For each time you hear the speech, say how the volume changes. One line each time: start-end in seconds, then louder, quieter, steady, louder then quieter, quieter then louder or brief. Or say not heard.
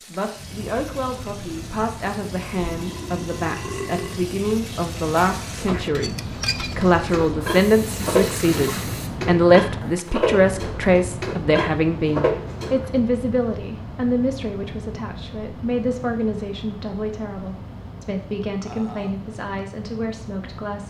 0.1-20.8 louder then quieter.